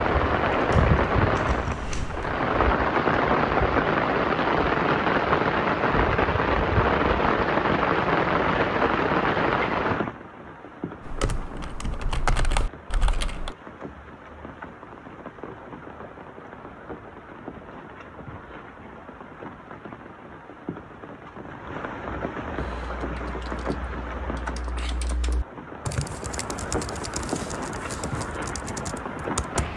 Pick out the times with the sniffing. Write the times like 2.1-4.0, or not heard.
not heard.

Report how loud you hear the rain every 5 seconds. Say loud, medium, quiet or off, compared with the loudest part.
loud, loud, quiet, quiet, quiet, medium.